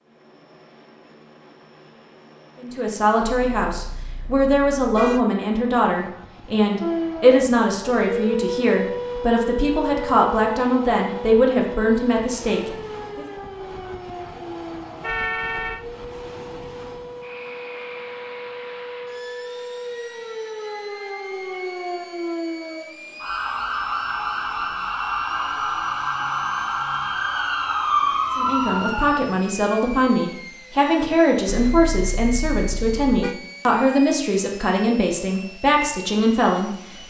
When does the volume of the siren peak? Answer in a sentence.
The loudest moment of the siren is at 28 seconds.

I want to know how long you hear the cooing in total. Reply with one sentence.
You can't hear the cooing here.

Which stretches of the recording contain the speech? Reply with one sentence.
The speech can be heard from 2.6 to 13.2 s and from 28.4 to 36.8 s.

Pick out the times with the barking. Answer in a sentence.
The barking can't be heard in this clip.